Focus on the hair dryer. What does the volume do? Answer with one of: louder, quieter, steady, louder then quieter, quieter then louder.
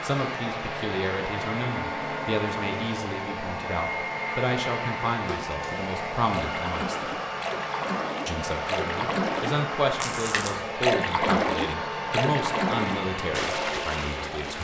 steady.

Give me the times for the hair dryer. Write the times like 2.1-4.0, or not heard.
0.0-14.5.